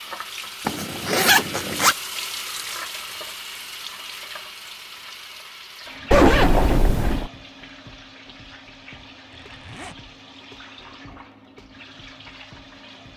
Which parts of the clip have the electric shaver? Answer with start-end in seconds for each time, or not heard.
not heard.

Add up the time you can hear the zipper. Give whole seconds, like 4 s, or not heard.
3 s.